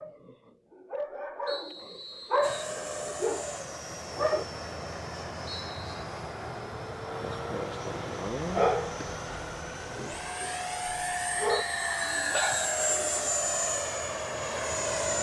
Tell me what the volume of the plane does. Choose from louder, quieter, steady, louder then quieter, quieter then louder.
louder.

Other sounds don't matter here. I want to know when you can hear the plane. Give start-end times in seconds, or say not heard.
2.4-15.1.